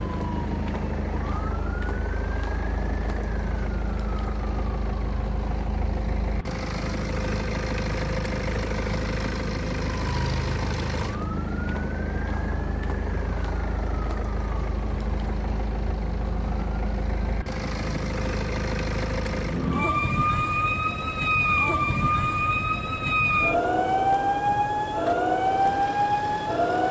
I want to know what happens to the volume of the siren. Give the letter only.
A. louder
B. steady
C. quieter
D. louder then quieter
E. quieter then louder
A.